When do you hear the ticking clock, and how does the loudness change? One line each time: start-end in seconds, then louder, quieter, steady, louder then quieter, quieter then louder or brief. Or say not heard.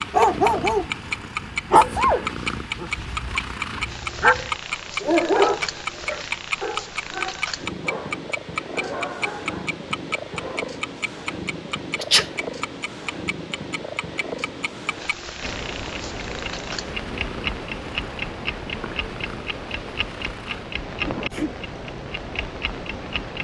0.0-23.4 quieter.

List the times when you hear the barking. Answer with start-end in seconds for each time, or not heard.
0.1-10.7.